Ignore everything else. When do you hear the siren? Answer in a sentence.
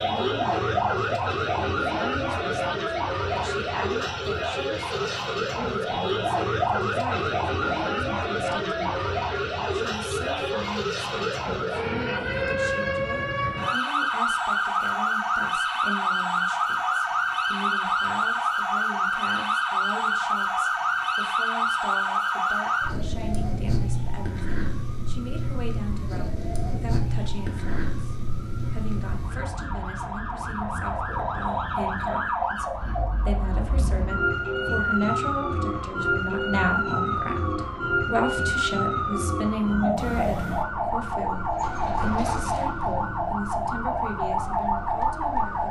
The siren can be heard from 0.0 to 45.6 s.